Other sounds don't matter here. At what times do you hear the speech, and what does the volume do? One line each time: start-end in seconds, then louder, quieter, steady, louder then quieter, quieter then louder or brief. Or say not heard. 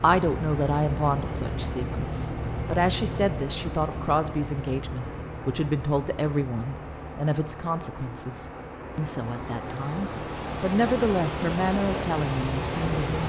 0.0-13.2 quieter then louder.